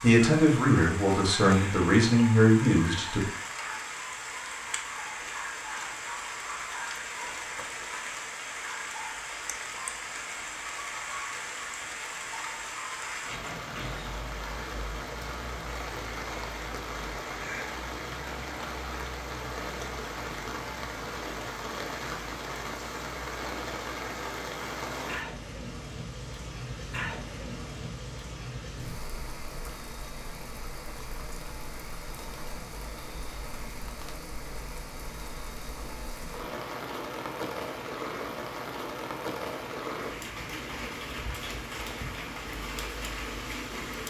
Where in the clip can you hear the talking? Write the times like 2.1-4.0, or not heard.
0.0-3.2.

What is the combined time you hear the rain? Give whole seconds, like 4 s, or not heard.
44 s.